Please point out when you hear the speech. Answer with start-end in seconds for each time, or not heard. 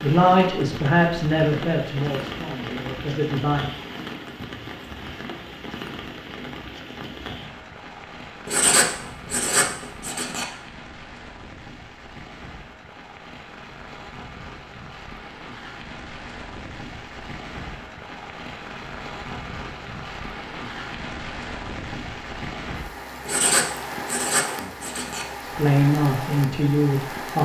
0.0-3.7, 25.4-27.4.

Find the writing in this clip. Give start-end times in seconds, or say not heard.
8.4-10.4, 23.2-25.2.